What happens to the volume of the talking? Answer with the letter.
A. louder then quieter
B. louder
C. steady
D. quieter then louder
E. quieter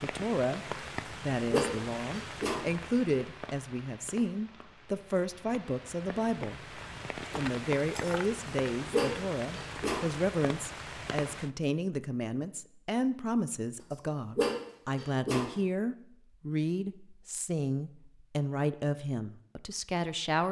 C.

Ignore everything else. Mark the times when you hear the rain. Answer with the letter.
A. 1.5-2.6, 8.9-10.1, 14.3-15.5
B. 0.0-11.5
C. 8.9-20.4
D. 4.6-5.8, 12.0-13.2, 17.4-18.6
B.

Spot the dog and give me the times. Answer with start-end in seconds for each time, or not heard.
1.5-2.6, 8.9-10.1, 14.3-15.5.